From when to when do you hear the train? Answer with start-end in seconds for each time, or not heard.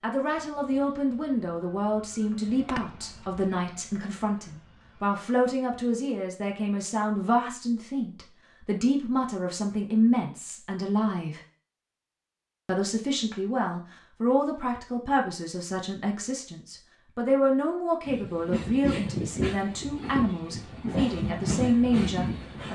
18.1-22.6.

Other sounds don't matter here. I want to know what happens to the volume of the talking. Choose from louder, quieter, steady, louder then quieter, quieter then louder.
steady.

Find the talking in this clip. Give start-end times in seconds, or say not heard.
0.0-11.4, 12.7-22.6.